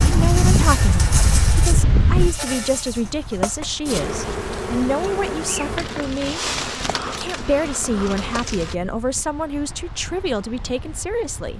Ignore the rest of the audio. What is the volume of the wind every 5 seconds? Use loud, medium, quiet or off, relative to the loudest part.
loud, quiet, quiet.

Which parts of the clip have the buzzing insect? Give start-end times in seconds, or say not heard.
0.0-8.8.